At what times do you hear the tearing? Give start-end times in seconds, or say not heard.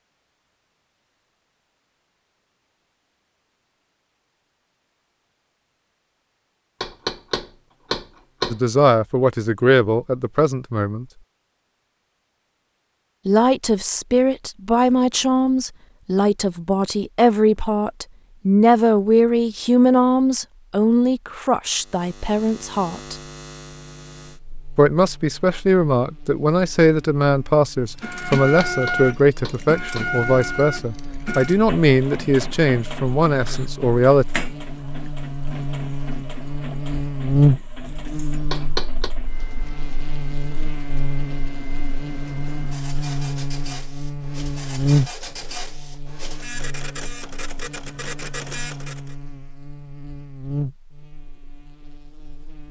not heard.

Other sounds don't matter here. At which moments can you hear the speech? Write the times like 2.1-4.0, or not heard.
8.5-11.1, 13.2-23.1, 24.8-34.2.